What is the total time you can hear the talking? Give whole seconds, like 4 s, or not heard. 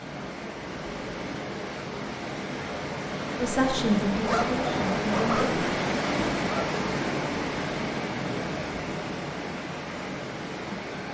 2 s.